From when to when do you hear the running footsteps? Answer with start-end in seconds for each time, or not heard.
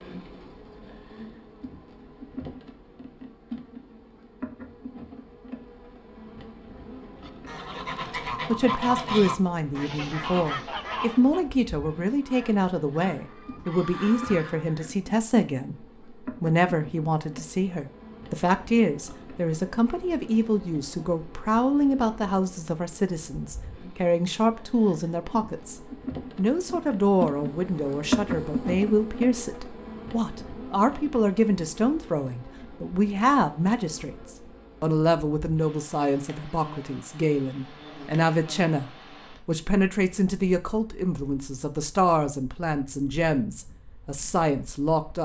not heard.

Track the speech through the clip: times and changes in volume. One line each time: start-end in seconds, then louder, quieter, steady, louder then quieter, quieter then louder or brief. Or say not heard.
8.0-45.2 steady.